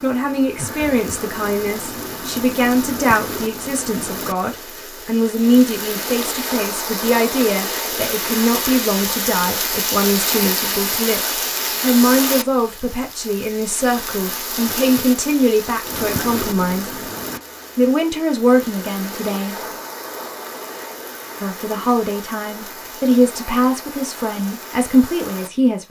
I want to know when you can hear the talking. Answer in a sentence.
The talking can be heard from 0.0 to 17.0 s, from 17.8 to 19.6 s and from 21.4 to 25.8 s.